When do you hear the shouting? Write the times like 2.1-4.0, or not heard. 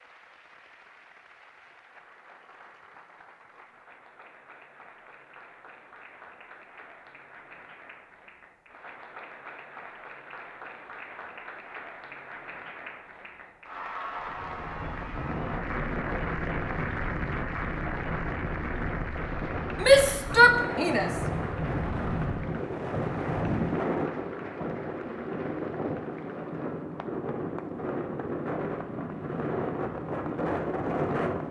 19.8-21.1.